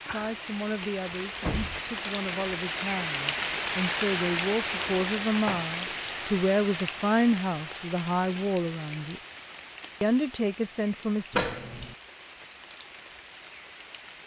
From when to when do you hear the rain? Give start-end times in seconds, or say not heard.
0.0-14.2.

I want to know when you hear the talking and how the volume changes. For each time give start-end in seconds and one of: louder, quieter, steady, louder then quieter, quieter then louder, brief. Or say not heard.
0.0-9.2 louder
10.0-11.4 brief.